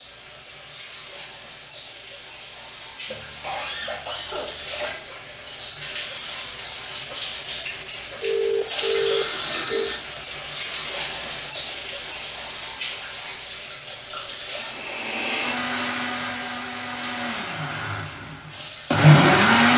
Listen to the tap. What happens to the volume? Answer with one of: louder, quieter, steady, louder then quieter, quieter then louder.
louder then quieter.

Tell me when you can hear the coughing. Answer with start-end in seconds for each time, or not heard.
3.0-5.0.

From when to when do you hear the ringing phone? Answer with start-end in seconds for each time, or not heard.
8.2-9.9.